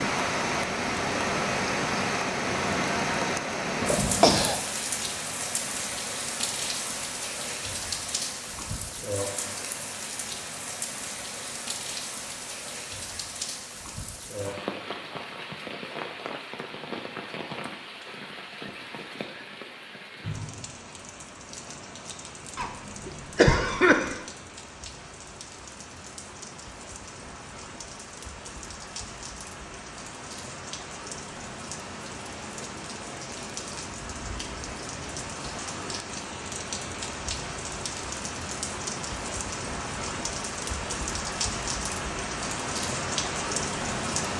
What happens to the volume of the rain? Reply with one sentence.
The loudness of the rain goes down, then up.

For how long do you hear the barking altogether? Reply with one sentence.
You can't hear the barking here.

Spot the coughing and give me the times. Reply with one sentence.
You can hear the coughing from 3.8 to 4.5 s and from 22.6 to 24.1 s.